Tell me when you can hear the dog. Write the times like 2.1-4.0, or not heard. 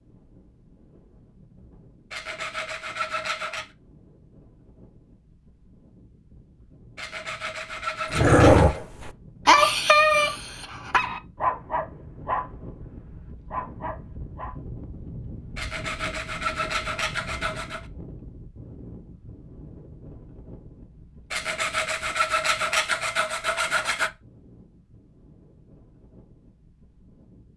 8.1-14.6.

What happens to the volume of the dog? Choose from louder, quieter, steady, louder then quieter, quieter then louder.
quieter.